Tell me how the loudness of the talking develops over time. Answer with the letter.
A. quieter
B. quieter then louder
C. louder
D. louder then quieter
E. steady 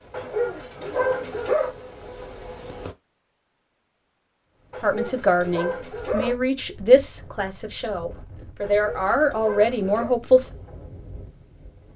B.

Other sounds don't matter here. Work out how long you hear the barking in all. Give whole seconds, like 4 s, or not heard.
5 s.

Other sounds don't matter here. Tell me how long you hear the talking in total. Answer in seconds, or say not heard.
6 s.